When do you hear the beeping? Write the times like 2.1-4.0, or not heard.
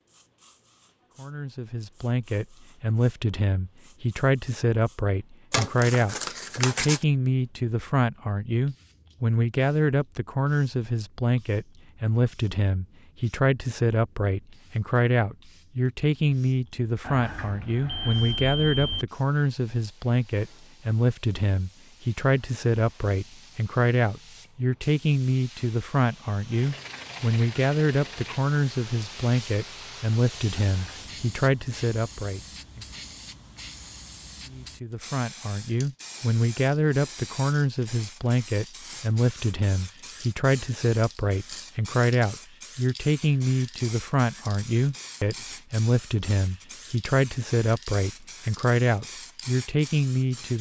17.0-19.1, 30.6-31.1.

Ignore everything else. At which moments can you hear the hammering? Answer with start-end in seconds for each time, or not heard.
not heard.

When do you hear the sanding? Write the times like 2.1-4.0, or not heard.
5.5-7.0, 26.5-28.5.